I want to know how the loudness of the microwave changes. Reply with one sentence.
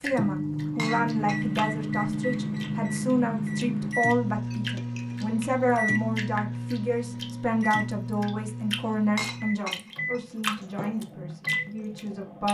The volume of the microwave goes down.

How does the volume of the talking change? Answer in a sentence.
The volume of the talking goes down.